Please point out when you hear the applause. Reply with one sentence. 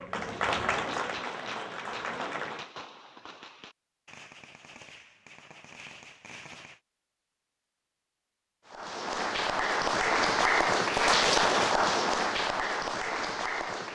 You can hear the applause from 0.0 to 2.7 s and from 8.7 to 13.9 s.